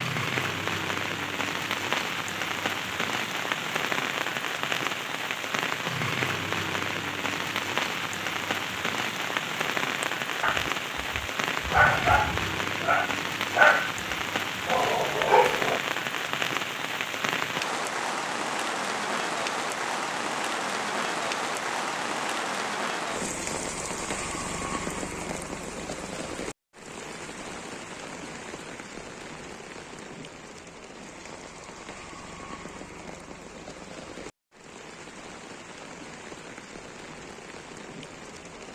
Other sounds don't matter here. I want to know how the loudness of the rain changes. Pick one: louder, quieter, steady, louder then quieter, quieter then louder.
quieter.